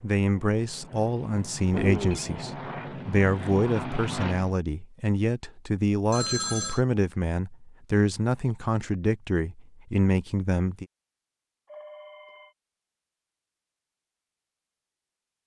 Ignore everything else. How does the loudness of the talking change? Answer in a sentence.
The volume of the talking stays about the same.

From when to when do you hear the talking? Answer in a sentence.
The talking can be heard from 0.0 to 10.8 s.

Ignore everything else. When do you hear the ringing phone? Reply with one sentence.
The ringing phone can be heard from 1.7 to 2.3 s, from 6.1 to 6.8 s and from 11.7 to 12.6 s.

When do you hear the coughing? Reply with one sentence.
You can't hear the coughing here.